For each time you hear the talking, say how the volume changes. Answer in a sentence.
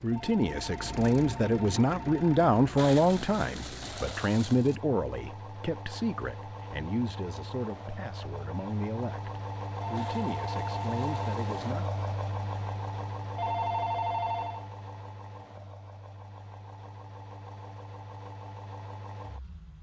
You can hear the talking from 0.0 to 11.8 s, getting quieter.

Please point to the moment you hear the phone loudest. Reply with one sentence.
The volume of the phone peaks at 14 seconds.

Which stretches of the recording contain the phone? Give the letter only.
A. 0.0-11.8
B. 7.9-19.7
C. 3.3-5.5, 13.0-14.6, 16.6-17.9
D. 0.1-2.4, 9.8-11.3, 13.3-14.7
D.